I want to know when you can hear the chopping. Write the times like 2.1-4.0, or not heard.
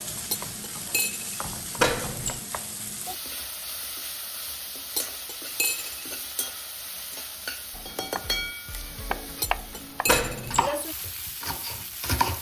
7.7-12.3.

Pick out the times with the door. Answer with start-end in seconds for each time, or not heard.
1.8-2.4, 10.1-10.7.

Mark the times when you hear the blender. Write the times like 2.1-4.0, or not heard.
not heard.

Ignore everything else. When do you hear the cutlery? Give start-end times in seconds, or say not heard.
0.3-1.4, 5.0-6.1, 9.4-10.6.